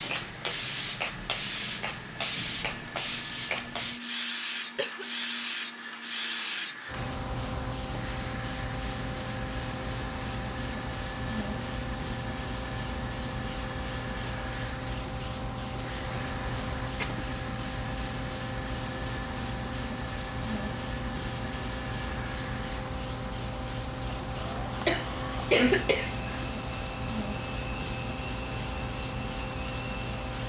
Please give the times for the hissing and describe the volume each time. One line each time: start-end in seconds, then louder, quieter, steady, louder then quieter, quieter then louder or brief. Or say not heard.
0.0-30.4 steady.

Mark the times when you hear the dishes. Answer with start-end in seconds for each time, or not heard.
not heard.